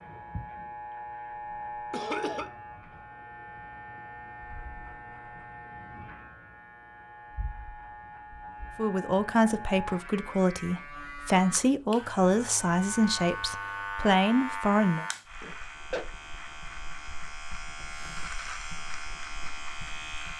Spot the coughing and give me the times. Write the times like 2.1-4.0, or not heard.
1.9-2.5, 15.4-16.1.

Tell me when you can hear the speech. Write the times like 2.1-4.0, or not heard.
8.8-15.1.